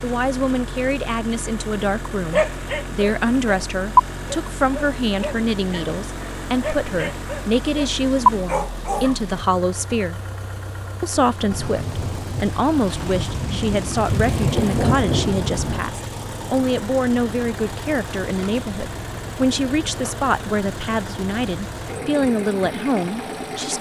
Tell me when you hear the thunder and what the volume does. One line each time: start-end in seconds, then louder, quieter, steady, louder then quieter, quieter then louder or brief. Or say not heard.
11.5-15.8 louder.